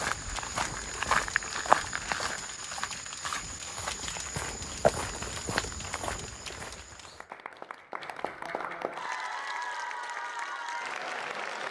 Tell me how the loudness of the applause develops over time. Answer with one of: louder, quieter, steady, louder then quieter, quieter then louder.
louder.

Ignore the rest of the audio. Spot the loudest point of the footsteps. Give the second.
2 s.